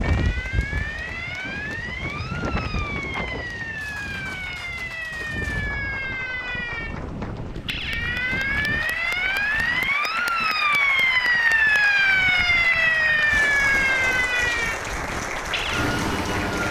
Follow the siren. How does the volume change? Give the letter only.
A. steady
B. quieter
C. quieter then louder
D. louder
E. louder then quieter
D.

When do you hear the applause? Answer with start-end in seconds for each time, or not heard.
0.0-16.6.